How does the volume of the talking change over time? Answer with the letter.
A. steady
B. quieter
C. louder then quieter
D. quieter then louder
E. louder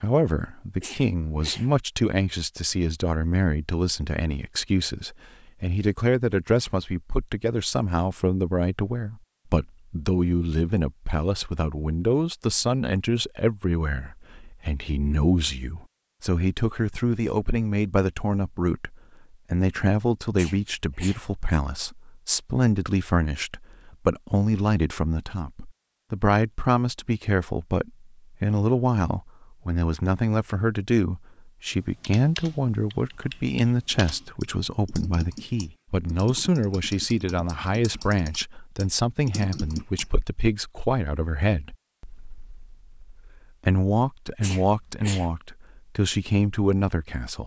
A.